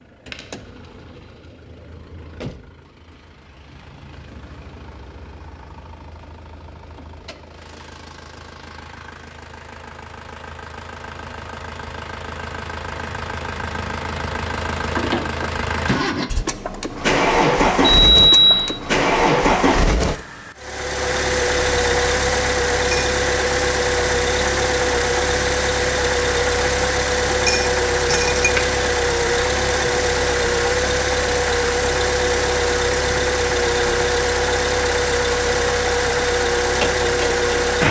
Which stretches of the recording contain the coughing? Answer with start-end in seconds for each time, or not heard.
not heard.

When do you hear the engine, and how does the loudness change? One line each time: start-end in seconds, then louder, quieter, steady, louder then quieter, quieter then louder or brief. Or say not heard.
0.0-37.8 louder.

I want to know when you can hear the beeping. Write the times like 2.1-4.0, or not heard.
17.8-18.8.